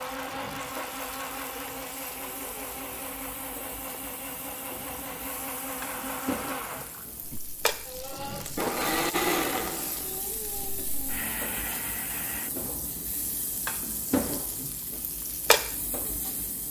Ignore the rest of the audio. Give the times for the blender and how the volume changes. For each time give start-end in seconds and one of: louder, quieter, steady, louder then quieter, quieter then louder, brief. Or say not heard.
0.0-12.5 louder then quieter.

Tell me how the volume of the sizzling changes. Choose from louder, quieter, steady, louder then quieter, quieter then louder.
louder.